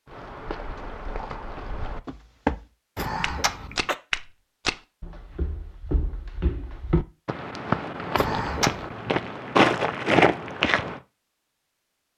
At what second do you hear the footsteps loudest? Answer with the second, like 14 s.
10 s.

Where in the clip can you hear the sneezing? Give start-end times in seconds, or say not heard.
3.0-4.0, 8.2-8.9.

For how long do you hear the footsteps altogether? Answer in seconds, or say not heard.
11 s.